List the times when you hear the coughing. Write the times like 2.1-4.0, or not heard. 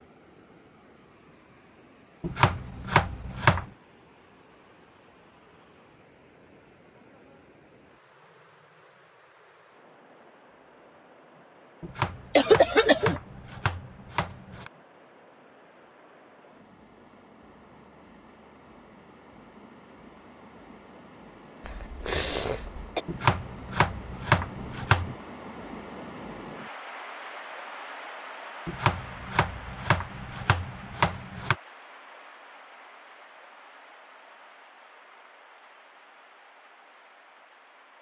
12.3-13.2, 21.6-23.0.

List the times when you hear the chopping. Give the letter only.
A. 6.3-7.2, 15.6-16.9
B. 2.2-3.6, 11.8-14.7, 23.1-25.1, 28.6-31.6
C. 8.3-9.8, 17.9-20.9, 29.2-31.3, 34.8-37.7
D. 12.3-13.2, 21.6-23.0
B.